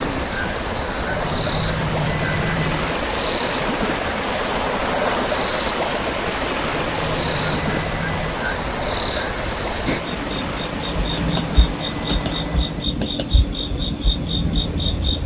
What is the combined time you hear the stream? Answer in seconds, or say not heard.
13 s.